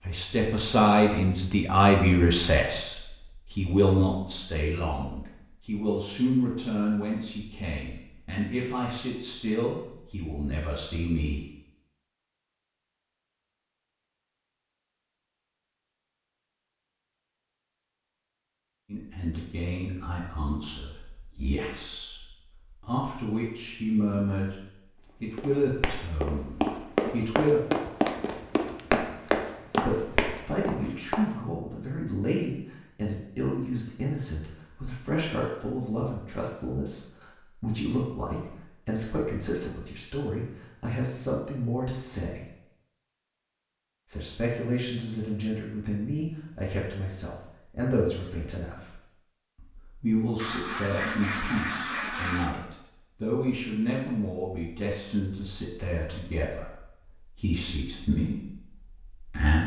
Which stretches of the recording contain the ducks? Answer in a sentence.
You can hear the ducks from 50.4 to 52.5 s.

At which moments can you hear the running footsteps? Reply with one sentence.
The running footsteps can be heard from 25.4 to 31.2 s.